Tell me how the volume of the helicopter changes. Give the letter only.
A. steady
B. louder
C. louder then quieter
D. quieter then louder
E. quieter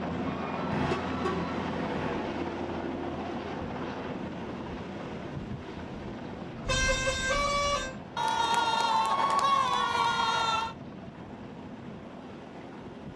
E.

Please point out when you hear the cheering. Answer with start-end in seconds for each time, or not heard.
0.2-2.0, 8.2-10.8.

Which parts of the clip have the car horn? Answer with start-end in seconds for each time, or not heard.
0.7-2.1, 6.7-7.9.